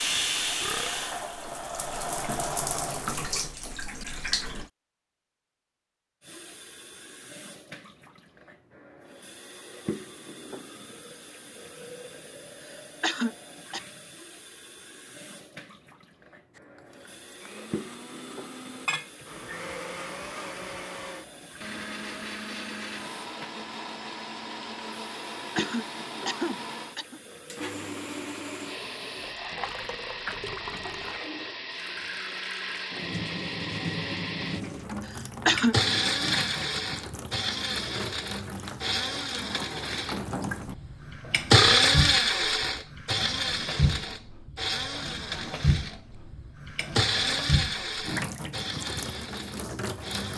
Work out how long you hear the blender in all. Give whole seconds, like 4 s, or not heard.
34 s.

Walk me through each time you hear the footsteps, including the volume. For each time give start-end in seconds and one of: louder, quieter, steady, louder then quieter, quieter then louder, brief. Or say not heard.
not heard.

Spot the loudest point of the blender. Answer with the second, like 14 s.
42 s.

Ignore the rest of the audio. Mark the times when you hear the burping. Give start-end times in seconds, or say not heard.
0.6-1.1, 41.5-42.0.